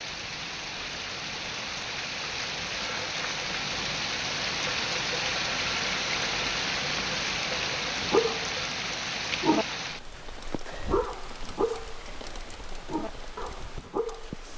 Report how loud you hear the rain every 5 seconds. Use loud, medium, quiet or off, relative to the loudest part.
loud, loud, quiet.